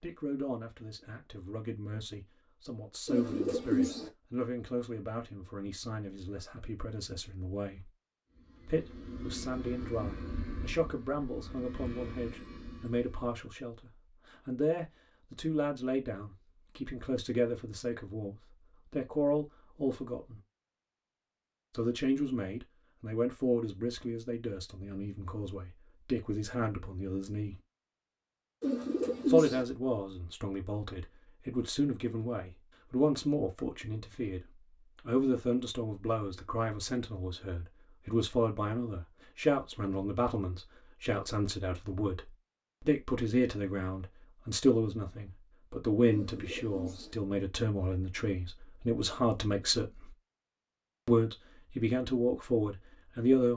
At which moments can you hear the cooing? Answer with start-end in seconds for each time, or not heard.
3.0-4.1, 28.6-29.6, 46.1-47.1.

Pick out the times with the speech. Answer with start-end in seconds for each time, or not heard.
0.0-7.9, 8.7-20.4, 21.7-27.6, 29.2-34.4, 35.0-50.1, 51.0-53.5.